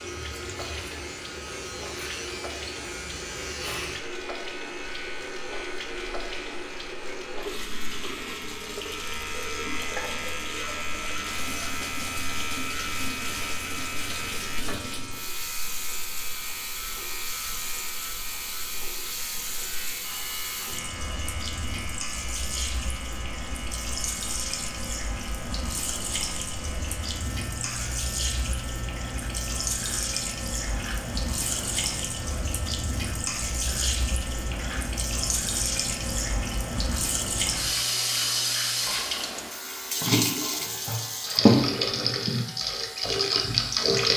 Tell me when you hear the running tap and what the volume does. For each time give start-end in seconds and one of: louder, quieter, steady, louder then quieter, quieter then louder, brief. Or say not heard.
0.0-44.1 louder.